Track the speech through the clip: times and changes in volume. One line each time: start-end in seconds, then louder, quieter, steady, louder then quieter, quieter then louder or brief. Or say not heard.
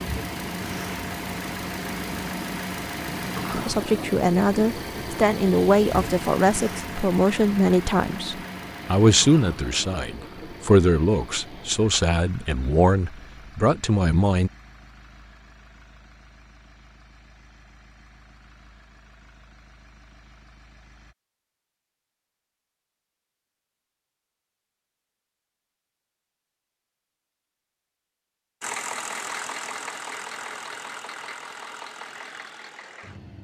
3.5-14.5 steady.